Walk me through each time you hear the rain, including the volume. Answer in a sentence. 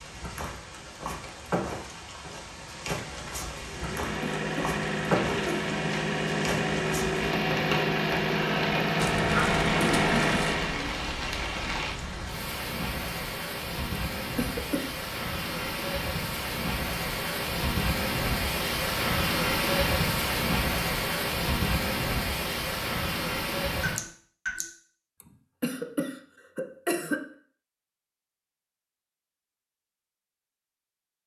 The rain can be heard from 0.0 to 24.6 s, getting louder.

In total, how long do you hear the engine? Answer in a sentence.
You can hear the engine for 7 seconds altogether.